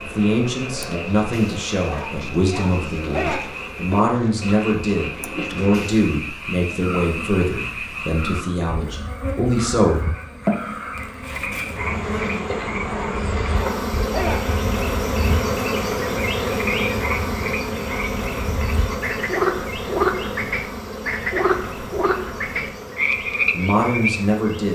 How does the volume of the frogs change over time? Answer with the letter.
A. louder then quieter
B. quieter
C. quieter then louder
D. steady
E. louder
E.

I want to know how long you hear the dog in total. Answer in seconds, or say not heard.
3 s.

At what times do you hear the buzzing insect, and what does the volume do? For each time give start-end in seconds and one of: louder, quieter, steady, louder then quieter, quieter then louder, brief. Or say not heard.
0.0-24.6 louder then quieter.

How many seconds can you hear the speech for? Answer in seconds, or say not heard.
11 s.